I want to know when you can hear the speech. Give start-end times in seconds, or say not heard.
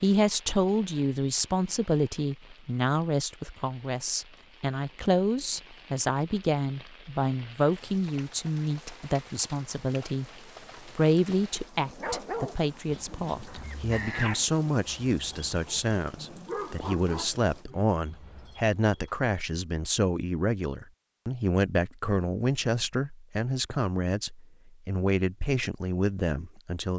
0.0-10.2, 10.8-26.9.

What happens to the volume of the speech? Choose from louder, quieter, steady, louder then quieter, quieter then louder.
steady.